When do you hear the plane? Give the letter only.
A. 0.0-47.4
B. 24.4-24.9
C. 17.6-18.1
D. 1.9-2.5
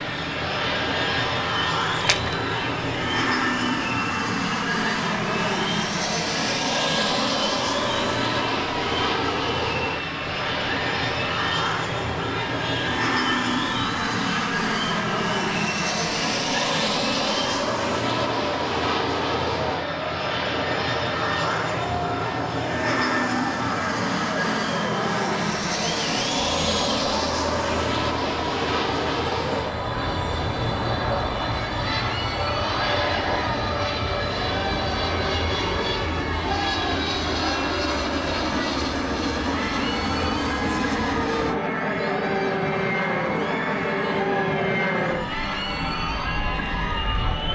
A.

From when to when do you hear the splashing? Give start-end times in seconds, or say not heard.
1.9-2.5.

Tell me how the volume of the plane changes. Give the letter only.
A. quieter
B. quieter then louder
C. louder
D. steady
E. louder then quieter
D.